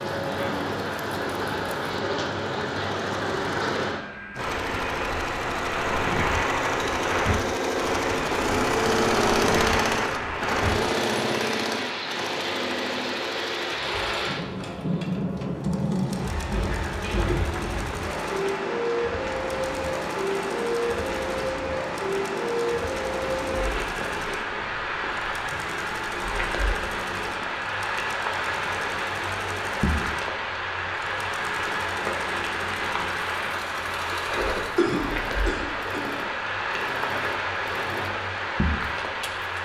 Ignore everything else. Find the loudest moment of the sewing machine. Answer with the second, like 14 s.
9 s.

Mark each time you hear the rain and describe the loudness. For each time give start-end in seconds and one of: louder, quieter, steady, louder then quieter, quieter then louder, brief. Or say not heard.
0.0-39.6 steady.